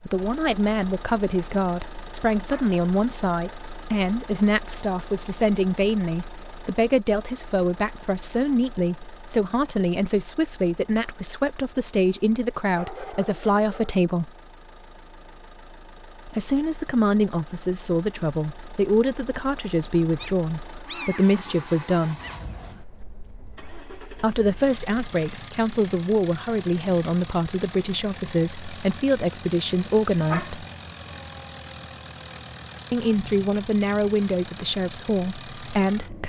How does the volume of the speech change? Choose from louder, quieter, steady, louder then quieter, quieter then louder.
steady.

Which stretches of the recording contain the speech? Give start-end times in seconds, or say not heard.
0.0-14.3, 16.2-22.2, 24.1-30.6, 32.9-36.2.